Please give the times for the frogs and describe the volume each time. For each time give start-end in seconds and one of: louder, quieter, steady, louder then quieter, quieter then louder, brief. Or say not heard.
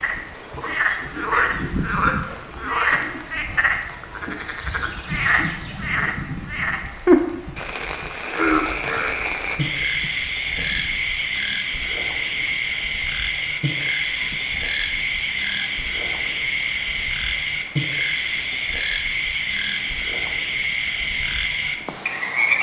0.0-22.5 steady.